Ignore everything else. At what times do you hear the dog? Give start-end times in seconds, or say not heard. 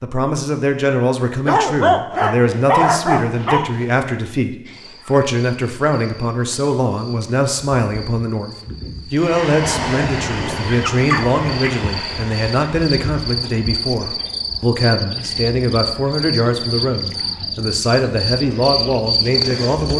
1.4-3.9, 10.8-11.8.